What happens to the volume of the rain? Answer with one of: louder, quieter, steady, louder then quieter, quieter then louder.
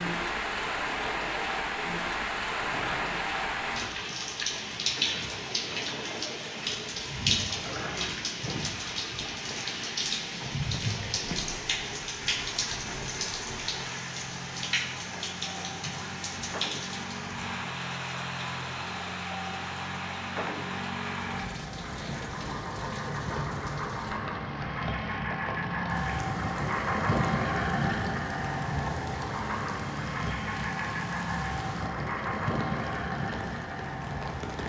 quieter.